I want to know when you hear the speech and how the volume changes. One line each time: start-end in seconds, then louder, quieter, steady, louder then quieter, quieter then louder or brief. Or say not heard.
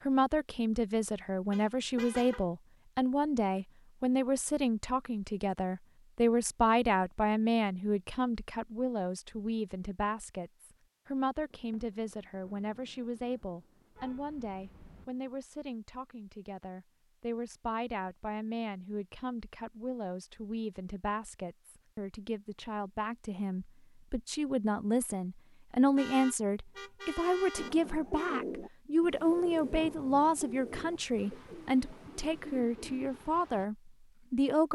0.0-34.7 quieter then louder.